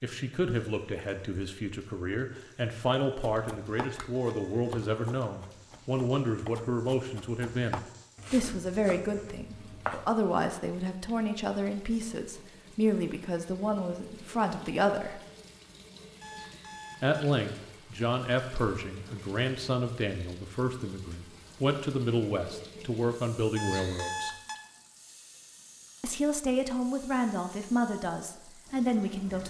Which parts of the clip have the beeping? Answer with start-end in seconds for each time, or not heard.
3.7-4.9, 16.2-17.4, 23.6-24.6.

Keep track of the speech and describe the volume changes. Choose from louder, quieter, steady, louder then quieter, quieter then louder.
steady.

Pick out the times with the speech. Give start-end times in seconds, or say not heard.
0.0-15.2, 17.0-24.4, 26.0-29.4.